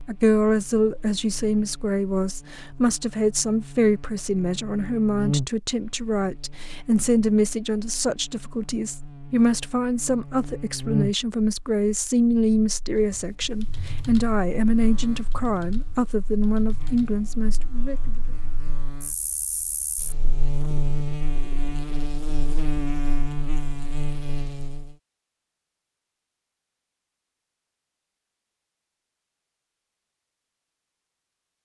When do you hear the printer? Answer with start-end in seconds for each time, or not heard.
not heard.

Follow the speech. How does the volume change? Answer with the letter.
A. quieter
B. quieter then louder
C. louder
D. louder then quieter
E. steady
E.